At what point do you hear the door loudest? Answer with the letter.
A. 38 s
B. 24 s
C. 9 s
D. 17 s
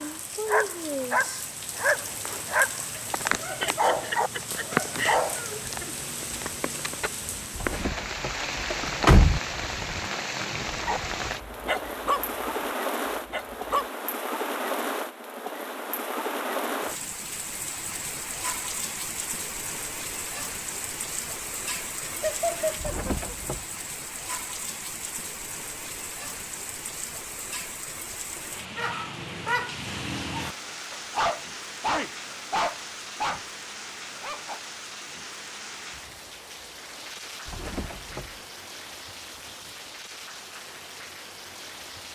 C.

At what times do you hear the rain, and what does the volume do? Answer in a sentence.
You can hear the rain from 0.0 to 42.1 s, getting quieter.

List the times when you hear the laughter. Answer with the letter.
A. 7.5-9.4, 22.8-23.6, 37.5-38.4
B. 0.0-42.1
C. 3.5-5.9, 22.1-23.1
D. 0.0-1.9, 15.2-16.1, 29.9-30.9
C.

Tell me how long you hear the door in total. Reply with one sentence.
You can hear the door for 4 seconds altogether.